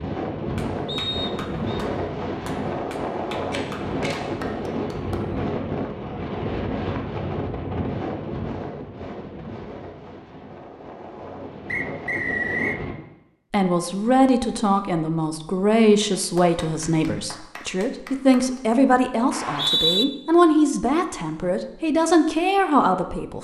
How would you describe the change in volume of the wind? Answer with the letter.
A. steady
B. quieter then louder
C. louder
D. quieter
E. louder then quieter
D.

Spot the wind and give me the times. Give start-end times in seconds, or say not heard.
0.0-12.9.